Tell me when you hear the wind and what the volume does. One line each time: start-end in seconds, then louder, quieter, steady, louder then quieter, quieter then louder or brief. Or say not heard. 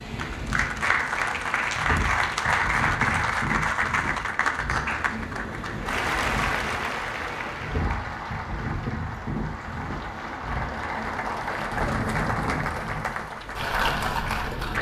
0.0-14.7 steady.